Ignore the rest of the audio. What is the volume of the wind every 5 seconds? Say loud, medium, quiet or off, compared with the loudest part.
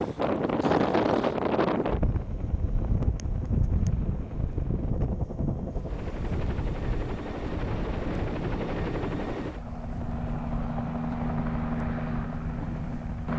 loud, medium, quiet.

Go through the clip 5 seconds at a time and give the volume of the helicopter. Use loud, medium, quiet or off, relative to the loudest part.
medium, loud, loud.